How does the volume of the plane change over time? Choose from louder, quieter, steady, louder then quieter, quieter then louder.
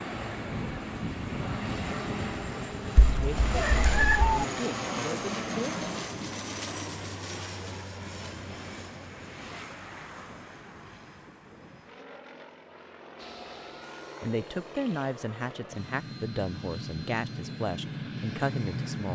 quieter then louder.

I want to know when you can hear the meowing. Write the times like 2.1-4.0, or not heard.
3.0-4.5.